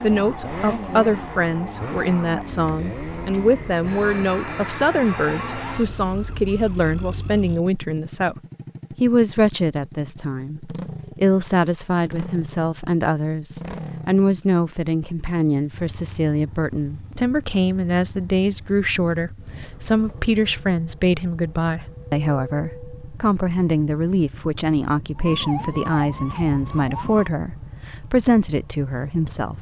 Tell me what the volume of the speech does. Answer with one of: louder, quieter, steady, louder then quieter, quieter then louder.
steady.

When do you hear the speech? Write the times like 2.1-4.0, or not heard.
0.0-8.3, 9.0-29.5.